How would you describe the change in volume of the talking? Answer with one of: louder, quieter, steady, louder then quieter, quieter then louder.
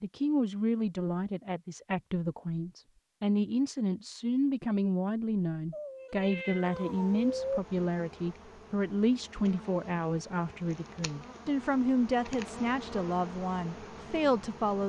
steady.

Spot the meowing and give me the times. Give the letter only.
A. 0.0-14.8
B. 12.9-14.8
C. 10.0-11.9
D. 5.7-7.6
D.